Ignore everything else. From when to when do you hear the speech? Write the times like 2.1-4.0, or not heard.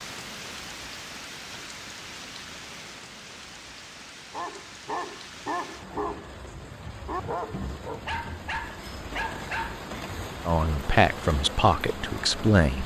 10.4-12.8.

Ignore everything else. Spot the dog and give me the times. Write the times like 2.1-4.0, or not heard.
4.3-9.8.